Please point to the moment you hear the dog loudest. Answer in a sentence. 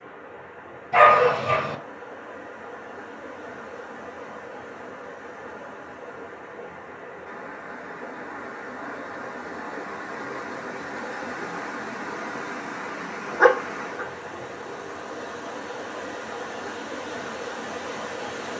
The loudest moment of the dog is at 1 second.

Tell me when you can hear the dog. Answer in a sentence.
The dog can be heard from 0.9 to 1.8 s and from 13.3 to 14.1 s.